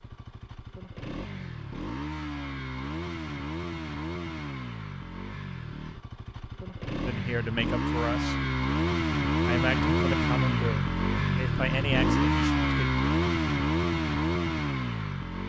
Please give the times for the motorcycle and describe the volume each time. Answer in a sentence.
The motorcycle can be heard from 0.0 to 15.4 s, getting louder.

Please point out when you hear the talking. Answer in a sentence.
You can hear the talking from 7.0 to 8.4 s and from 9.4 to 12.7 s.